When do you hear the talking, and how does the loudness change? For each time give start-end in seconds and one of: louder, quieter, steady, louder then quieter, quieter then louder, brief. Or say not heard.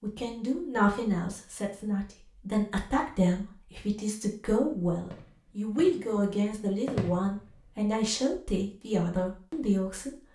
0.0-10.2 steady.